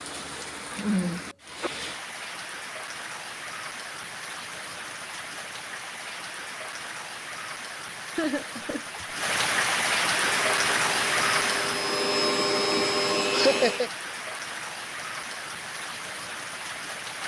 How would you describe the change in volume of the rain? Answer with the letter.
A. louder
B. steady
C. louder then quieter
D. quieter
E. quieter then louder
C.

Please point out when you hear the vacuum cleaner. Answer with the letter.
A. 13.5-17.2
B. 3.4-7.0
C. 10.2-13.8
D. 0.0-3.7
C.